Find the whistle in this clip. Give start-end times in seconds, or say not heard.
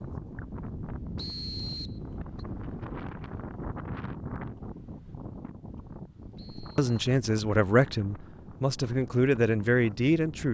1.1-2.5, 6.3-6.9.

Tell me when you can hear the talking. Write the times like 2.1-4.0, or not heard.
6.5-10.4.